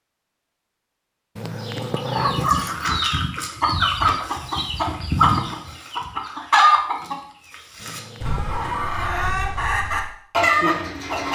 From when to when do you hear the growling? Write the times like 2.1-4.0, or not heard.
1.4-2.9, 7.8-9.1.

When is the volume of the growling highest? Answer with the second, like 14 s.
2 s.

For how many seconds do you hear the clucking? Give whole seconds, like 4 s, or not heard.
9 s.